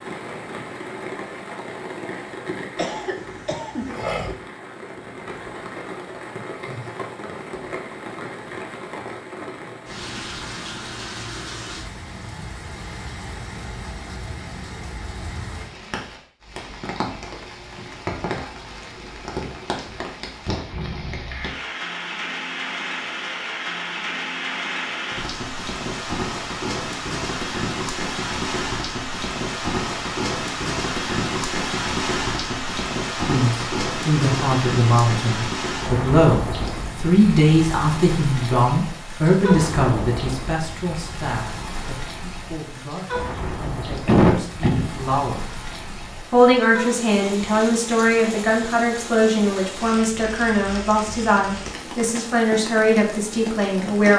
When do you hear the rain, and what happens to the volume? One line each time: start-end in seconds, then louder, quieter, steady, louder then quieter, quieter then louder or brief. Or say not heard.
0.0-54.1 louder then quieter.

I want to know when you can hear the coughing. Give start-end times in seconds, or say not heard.
2.8-4.1, 44.0-44.9.